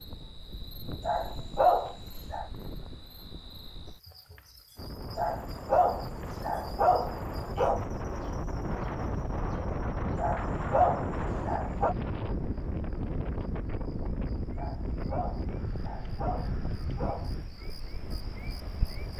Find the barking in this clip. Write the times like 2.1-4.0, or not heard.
1.0-2.5, 5.2-7.8, 10.2-11.9, 14.6-17.3.